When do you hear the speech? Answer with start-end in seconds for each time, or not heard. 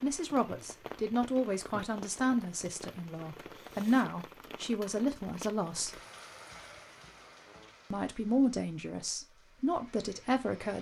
0.0-6.0, 7.9-10.7.